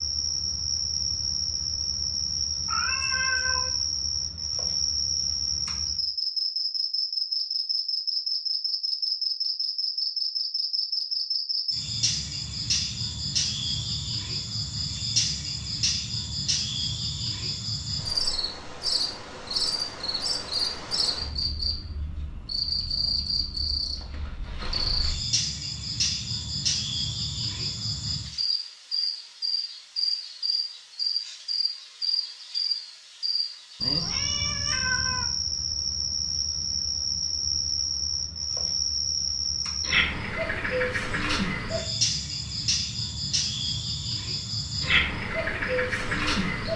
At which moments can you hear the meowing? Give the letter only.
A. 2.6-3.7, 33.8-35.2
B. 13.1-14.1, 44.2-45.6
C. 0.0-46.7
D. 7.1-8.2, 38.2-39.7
A.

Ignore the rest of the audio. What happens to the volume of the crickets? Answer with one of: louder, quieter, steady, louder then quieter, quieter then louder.
steady.